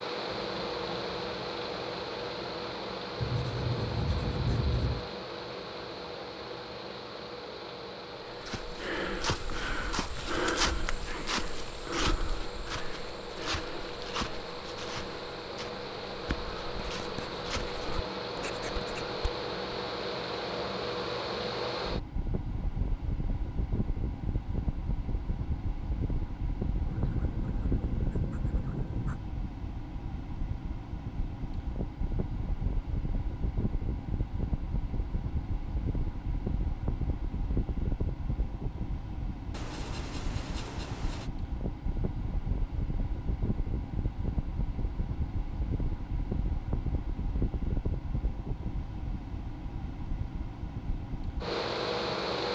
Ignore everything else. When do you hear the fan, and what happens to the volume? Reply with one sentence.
The fan can be heard from 0.0 to 52.5 s, at a steady volume.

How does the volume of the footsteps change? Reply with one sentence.
The loudness of the footsteps goes down.